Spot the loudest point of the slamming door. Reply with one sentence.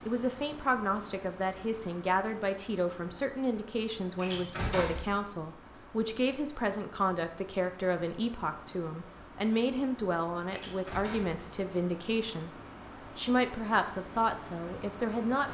The volume of the slamming door peaks at 5 seconds.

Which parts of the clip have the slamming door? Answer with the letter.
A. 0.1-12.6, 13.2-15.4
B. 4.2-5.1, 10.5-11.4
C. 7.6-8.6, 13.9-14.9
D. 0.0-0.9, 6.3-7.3
B.